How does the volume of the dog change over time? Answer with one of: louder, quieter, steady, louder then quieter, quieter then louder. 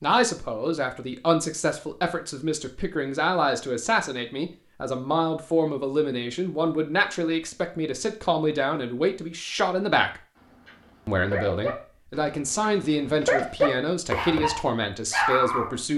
louder.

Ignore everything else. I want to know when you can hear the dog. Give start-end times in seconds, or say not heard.
10.3-15.8.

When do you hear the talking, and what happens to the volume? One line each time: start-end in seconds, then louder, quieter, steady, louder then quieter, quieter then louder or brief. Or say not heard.
0.0-10.2 steady
11.1-15.9 steady.